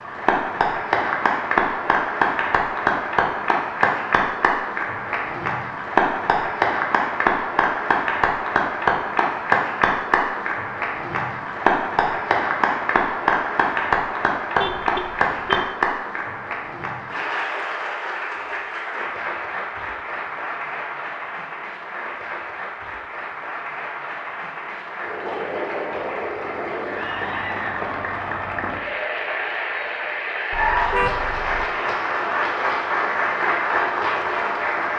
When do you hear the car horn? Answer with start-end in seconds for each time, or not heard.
14.6-15.7, 30.5-31.7.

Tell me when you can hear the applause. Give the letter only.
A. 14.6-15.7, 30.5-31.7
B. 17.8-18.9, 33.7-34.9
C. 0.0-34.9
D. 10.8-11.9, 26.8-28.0
C.